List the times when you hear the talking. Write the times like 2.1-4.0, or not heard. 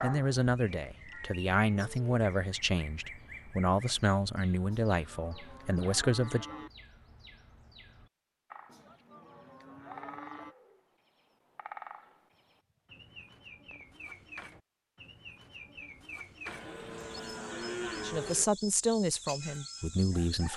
0.0-6.5, 18.0-20.5.